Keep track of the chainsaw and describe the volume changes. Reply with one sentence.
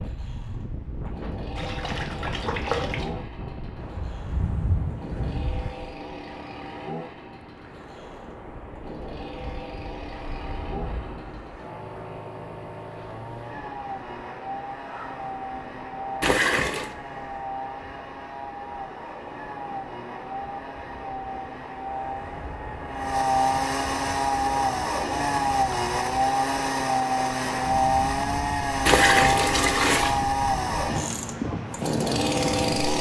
The volume of the chainsaw goes up.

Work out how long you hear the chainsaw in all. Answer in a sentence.
The chainsaw can be heard for 33 seconds in total.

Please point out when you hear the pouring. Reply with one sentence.
You can hear the pouring from 1.6 to 3.1 s, from 16.2 to 16.9 s and from 28.9 to 30.2 s.